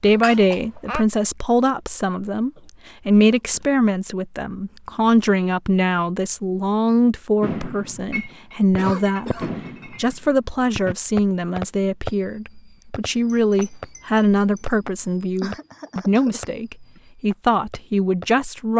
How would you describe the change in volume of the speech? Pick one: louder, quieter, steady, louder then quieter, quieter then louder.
steady.